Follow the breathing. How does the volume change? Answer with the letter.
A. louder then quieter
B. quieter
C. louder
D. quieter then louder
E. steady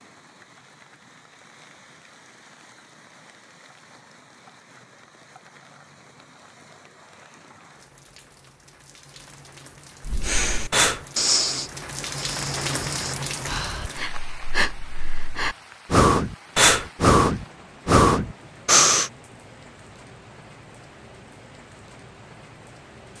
D.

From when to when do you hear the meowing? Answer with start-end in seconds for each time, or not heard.
not heard.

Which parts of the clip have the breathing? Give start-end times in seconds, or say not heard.
10.1-19.1.